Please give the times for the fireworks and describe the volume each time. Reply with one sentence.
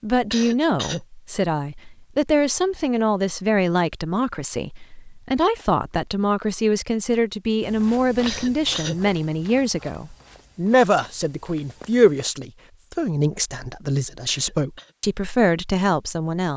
You can't hear the fireworks here.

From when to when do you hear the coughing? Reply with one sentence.
The coughing can be heard from 0.3 to 1.0 s, from 8.2 to 9.0 s and from 14.2 to 14.9 s.